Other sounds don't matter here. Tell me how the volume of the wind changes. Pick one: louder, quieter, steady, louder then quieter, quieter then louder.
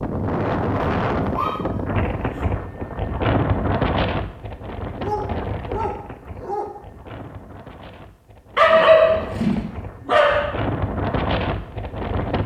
quieter then louder.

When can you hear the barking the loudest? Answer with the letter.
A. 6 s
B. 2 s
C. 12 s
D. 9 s
D.